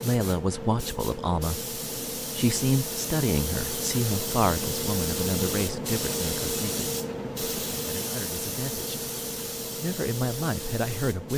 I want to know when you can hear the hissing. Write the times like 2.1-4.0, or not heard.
0.0-11.3.